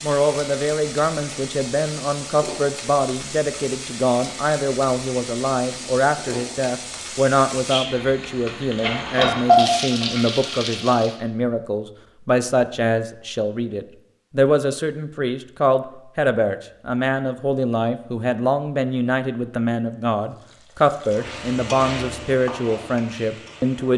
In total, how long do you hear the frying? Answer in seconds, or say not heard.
15 s.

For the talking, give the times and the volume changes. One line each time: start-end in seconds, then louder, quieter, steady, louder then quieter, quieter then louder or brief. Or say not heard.
0.0-23.9 steady.